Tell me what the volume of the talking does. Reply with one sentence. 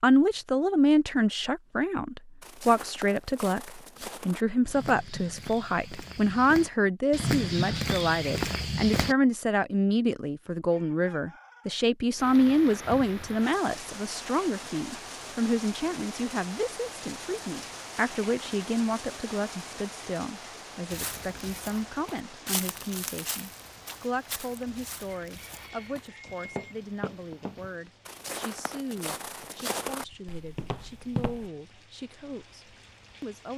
The loudness of the talking goes down.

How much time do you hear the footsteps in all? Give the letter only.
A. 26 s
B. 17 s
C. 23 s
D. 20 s
B.